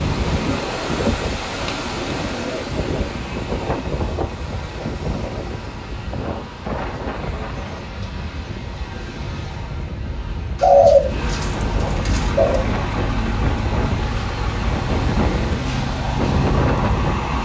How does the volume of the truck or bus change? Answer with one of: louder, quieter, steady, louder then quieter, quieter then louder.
louder.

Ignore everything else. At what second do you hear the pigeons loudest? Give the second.
11 s.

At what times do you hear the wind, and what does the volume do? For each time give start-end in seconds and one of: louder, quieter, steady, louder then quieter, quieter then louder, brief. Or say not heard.
0.0-17.3 quieter then louder.